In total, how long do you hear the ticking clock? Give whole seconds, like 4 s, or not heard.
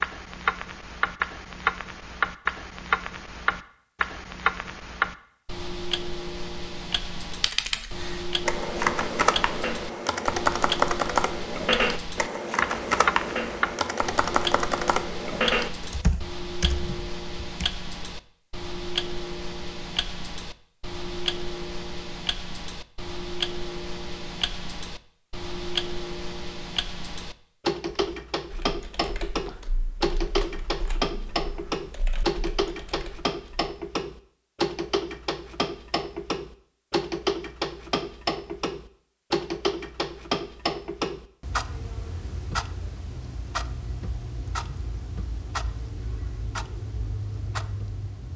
48 s.